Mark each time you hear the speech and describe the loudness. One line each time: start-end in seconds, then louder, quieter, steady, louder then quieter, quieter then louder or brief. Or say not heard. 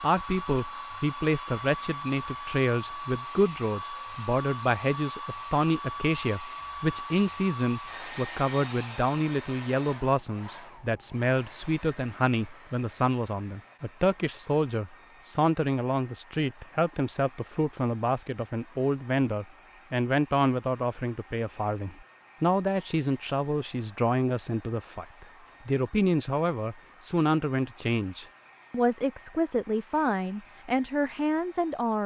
0.0-32.0 steady.